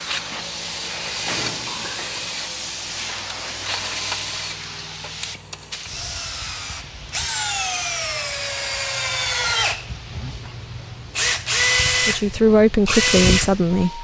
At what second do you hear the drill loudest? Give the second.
12 s.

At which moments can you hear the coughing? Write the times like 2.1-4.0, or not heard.
1.6-2.3.